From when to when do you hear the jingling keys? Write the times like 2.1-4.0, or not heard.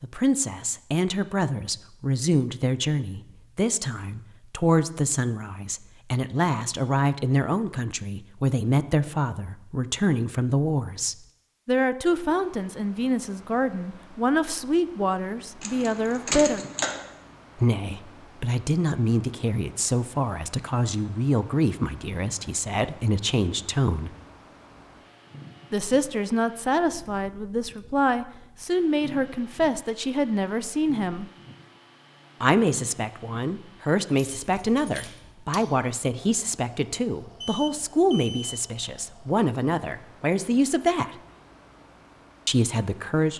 15.6-17.0, 34.0-35.8.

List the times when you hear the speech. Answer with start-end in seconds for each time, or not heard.
0.0-16.6, 17.6-24.1, 25.7-31.2, 32.4-41.1, 42.5-43.3.